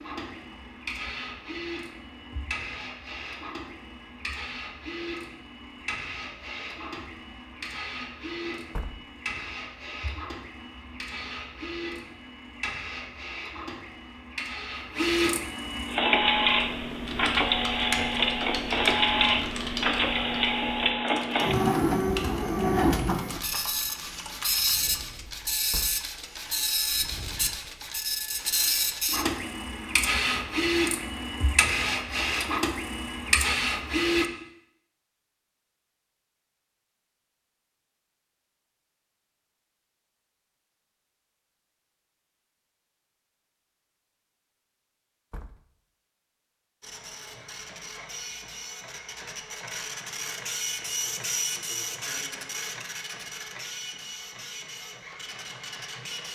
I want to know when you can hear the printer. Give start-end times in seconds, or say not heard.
0.0-34.3, 46.8-56.3.